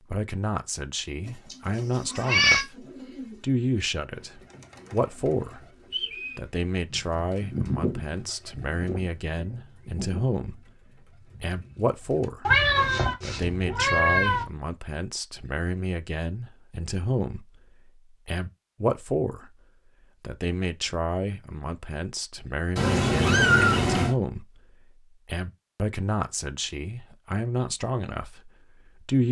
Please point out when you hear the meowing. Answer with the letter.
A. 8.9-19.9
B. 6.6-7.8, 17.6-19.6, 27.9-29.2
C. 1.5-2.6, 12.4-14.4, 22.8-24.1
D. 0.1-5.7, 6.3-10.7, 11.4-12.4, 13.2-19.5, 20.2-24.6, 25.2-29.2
C.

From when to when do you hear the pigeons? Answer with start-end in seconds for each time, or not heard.
1.2-12.2.